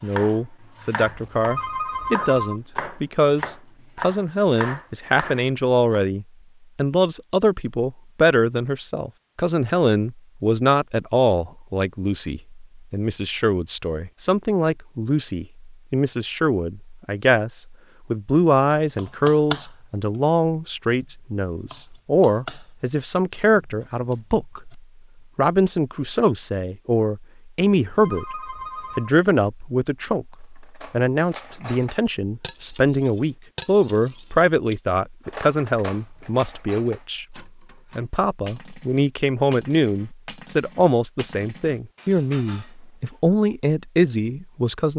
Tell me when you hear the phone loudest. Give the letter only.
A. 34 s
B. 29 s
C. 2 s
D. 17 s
C.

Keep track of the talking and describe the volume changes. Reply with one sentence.
The loudness of the talking stays about the same.